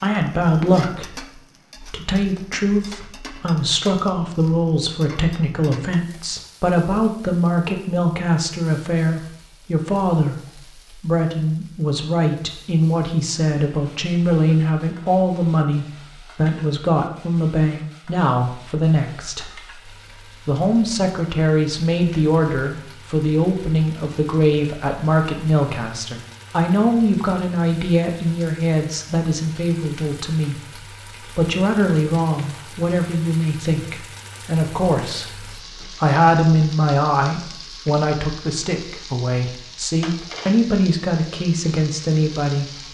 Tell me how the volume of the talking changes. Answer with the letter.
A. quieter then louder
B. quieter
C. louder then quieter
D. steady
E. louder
D.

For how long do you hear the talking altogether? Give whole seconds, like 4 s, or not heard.
43 s.